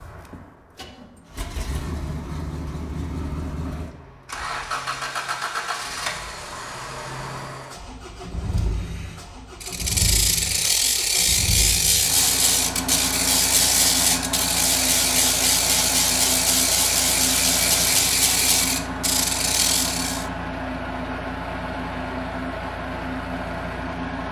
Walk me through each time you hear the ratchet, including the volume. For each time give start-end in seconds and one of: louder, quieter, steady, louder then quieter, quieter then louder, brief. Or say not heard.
9.6-20.2 steady.